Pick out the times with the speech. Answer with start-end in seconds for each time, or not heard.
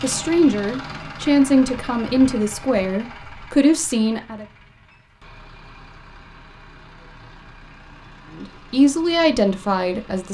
0.0-4.5, 8.3-10.2.